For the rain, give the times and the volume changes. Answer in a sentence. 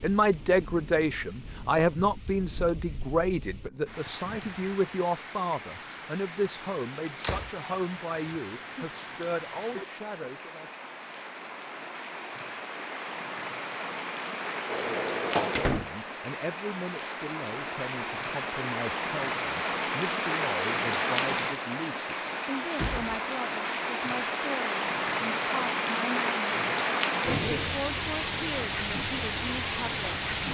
The rain can be heard from 0.0 to 30.4 s, getting louder.